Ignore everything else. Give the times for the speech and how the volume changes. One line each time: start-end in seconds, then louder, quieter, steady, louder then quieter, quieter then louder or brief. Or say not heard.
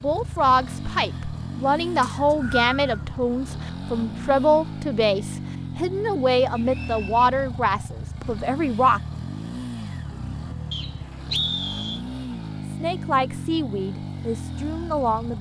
0.0-9.0 steady
12.7-15.3 brief.